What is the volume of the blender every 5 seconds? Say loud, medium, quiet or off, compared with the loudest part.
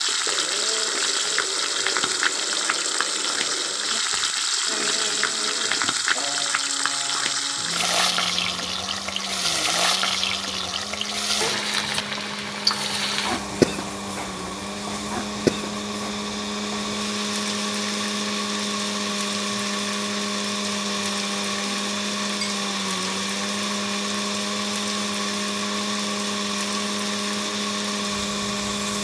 medium, medium, medium, loud, loud, loud.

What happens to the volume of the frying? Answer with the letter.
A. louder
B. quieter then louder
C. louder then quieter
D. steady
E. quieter
E.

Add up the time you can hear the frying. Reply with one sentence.
The frying can be heard for 29 seconds in total.